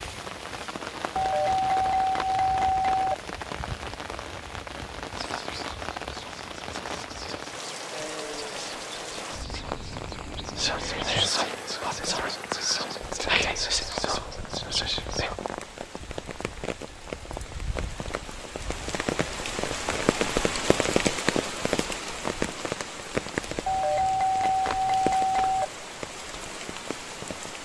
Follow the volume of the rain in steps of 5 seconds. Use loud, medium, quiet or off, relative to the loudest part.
medium, medium, medium, medium, loud, medium.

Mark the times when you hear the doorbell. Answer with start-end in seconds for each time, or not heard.
1.1-3.1, 23.6-25.6.